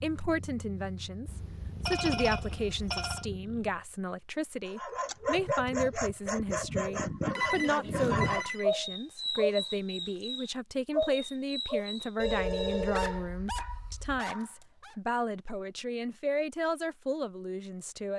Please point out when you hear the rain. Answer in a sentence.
You can't hear the rain here.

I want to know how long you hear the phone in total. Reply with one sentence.
You can hear the phone for 5 seconds altogether.